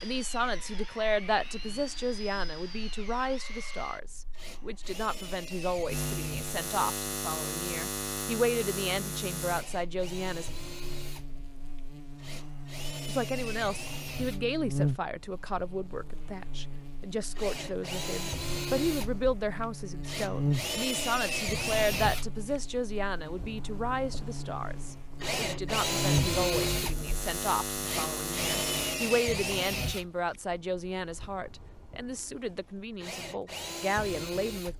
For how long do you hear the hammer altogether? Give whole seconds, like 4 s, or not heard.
not heard.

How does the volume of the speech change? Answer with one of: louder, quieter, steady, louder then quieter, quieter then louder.
steady.